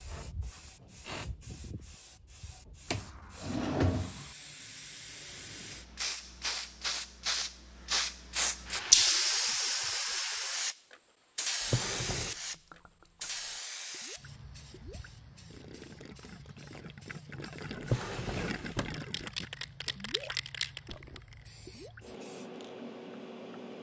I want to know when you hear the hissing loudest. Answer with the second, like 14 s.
9 s.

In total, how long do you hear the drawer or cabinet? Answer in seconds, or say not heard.
3 s.